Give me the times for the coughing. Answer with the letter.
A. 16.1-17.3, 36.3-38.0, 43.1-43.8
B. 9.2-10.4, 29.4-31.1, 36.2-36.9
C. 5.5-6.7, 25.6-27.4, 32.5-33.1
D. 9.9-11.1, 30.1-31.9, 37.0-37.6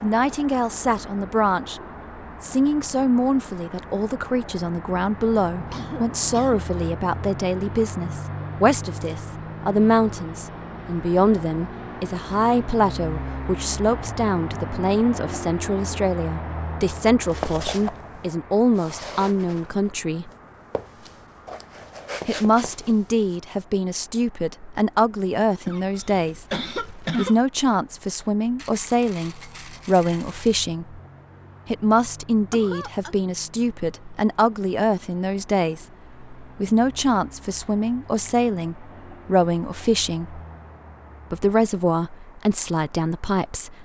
C.